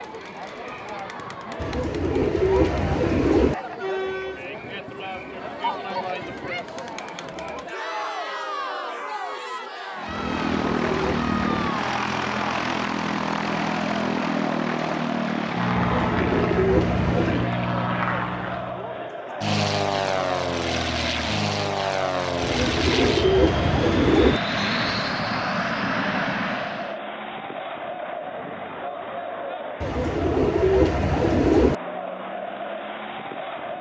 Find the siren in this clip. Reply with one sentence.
You can't hear the siren here.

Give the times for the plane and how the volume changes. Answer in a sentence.
You can hear the plane from 9.9 to 26.9 s, at a steady volume.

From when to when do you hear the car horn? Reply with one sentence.
The car horn can't be heard in this clip.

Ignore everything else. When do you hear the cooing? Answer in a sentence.
The cooing can be heard from 1.6 to 3.5 s, from 10.1 to 11.7 s, from 15.8 to 17.5 s, from 22.4 to 24.4 s and from 29.8 to 31.8 s.